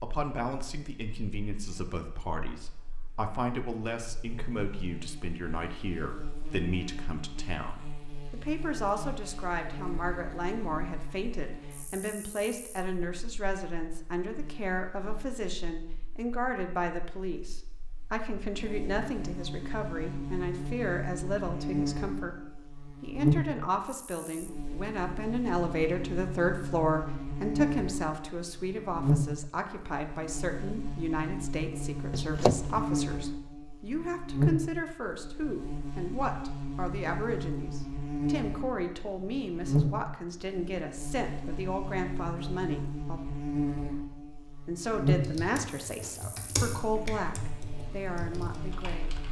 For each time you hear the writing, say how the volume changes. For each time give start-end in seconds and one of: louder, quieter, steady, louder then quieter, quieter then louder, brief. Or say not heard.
not heard.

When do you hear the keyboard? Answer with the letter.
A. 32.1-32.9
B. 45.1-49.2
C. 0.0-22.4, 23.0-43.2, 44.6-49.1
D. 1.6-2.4
B.